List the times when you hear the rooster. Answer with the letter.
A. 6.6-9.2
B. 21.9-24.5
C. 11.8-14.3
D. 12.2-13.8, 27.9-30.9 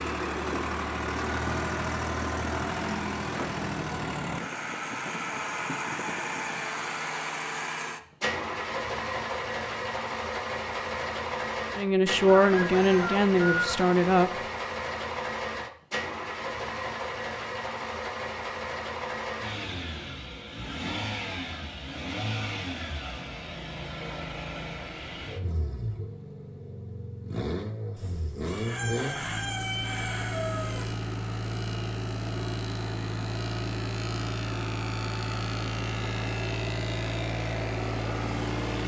D.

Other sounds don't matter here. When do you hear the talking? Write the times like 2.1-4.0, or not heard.
11.8-14.3.